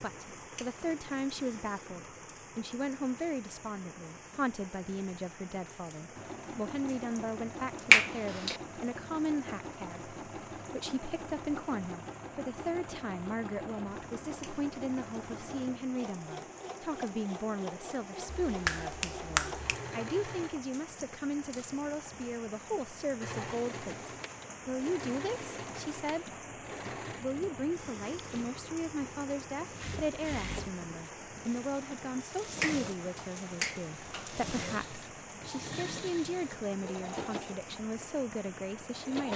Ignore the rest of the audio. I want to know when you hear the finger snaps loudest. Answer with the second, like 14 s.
8 s.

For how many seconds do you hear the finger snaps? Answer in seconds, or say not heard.
4 s.